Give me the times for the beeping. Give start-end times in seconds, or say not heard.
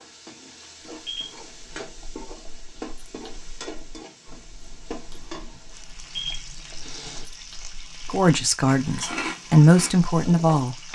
1.1-1.9, 6.2-7.2.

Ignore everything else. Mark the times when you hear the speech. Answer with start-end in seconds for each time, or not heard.
8.1-10.8.